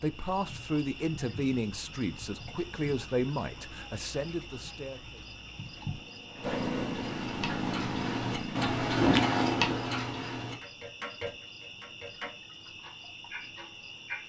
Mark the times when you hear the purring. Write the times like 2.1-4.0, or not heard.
5.7-9.7.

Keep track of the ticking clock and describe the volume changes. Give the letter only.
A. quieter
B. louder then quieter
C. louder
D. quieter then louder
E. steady
B.